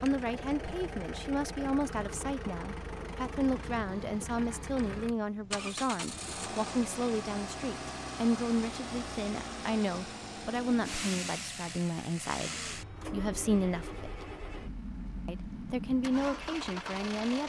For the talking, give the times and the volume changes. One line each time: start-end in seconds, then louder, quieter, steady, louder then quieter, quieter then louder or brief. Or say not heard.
0.0-14.2 steady
15.2-17.4 brief.